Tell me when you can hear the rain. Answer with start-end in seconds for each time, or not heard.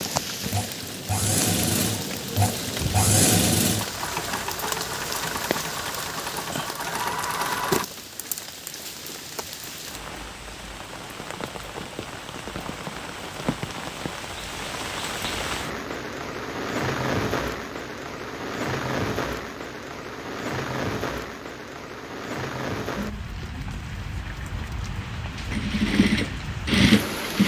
0.0-27.4.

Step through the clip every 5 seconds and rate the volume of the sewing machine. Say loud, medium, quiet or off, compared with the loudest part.
medium, medium, off, off, off, loud.